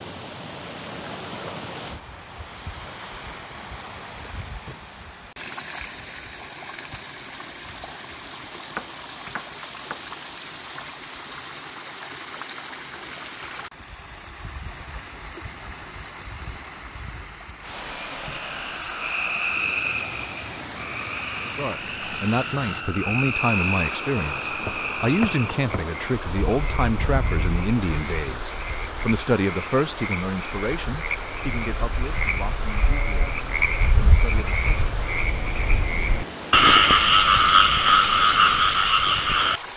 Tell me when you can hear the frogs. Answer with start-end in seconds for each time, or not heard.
18.1-39.6.